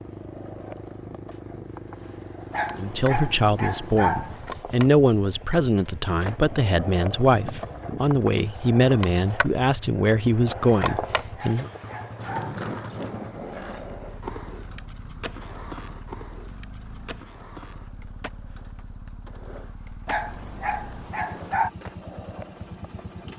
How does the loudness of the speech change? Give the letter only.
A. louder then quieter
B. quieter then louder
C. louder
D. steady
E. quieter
D.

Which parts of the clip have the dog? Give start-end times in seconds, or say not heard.
2.5-4.4, 10.8-12.6, 20.1-21.7.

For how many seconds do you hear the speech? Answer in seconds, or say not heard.
9 s.